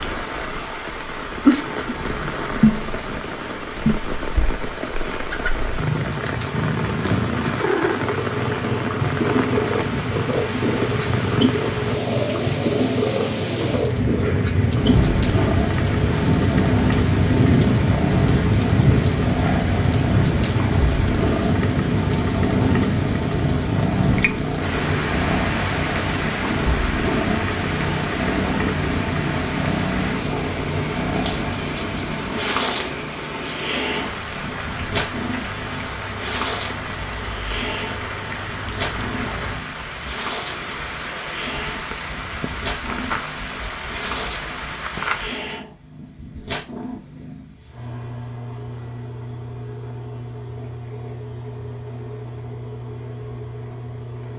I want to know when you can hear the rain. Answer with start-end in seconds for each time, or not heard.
0.0-45.5.